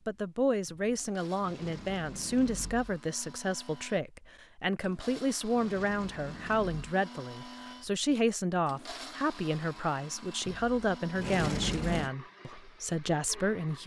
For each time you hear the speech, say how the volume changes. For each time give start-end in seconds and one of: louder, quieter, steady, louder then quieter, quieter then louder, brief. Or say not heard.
0.1-13.8 steady.